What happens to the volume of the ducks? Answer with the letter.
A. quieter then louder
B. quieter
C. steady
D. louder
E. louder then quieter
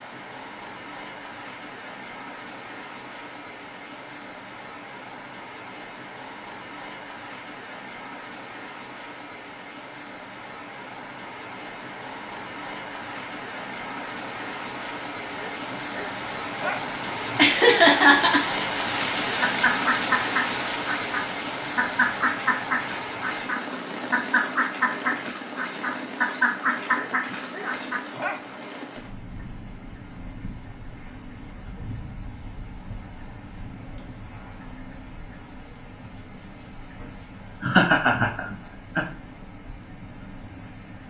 C.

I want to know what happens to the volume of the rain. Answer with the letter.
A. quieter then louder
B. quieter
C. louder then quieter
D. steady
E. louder
C.